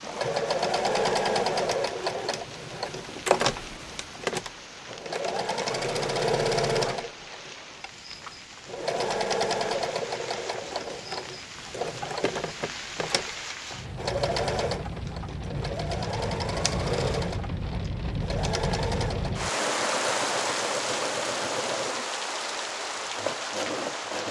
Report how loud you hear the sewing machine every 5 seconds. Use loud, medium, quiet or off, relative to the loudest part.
loud, loud, medium, medium, medium.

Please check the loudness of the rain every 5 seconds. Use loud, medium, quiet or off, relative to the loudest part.
quiet, quiet, medium, loud, loud.